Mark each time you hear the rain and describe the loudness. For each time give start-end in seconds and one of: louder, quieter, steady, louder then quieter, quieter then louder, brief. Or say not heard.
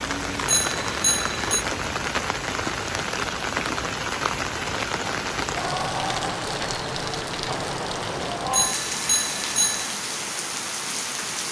0.0-11.4 steady.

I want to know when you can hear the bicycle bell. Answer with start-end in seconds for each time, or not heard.
0.5-1.6, 8.5-9.8.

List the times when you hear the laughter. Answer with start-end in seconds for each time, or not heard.
not heard.